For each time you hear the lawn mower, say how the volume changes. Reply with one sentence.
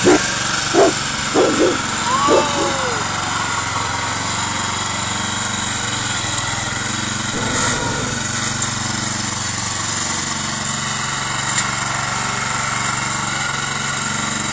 You can hear the lawn mower from 0.0 to 14.4 s, at a steady volume.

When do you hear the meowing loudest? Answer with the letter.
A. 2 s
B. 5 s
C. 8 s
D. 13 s
A.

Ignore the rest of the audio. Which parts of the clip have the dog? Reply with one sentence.
The dog can be heard from 0.0 to 2.8 s.